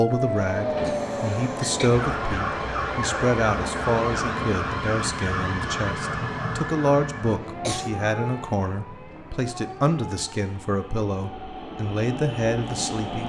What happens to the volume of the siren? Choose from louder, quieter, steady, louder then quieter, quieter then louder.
quieter.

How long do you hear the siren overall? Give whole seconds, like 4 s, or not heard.
13 s.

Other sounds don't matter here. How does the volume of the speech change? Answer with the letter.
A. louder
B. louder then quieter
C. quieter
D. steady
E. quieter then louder
D.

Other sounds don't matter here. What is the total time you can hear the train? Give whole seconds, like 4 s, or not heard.
13 s.